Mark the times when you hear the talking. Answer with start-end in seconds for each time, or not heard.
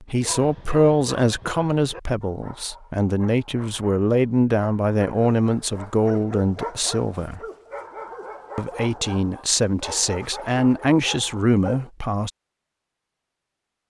0.0-7.4, 8.6-12.3.